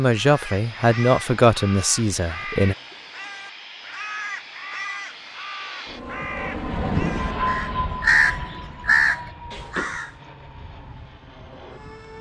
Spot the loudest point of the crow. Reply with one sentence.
The loudest moment of the crow is at 8 seconds.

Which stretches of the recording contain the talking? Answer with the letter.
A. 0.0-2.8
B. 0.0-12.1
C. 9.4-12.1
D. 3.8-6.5
A.